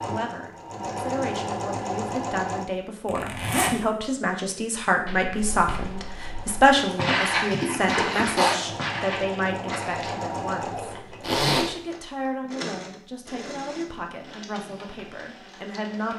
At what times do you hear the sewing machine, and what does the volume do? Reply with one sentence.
You can hear the sewing machine briefly from 0.0 to 2.6 s; and from 5.3 to 16.1 s, getting louder then quieter.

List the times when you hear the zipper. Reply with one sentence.
The zipper can be heard from 3.0 to 3.8 s, from 6.8 to 8.6 s and from 11.2 to 11.7 s.